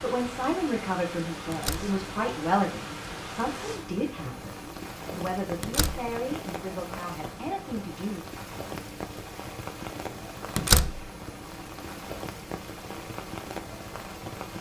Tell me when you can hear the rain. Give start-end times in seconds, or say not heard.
0.0-14.5.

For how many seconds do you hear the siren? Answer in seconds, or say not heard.
not heard.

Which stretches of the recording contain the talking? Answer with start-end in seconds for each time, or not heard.
0.0-8.2.